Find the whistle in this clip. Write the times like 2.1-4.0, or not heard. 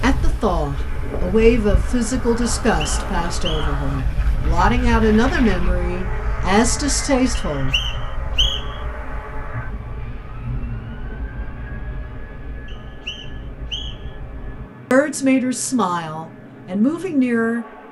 2.4-3.9, 7.3-8.8, 12.7-14.1.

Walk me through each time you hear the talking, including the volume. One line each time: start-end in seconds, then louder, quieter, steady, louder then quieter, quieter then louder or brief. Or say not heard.
0.0-7.8 quieter then louder
14.9-17.6 brief.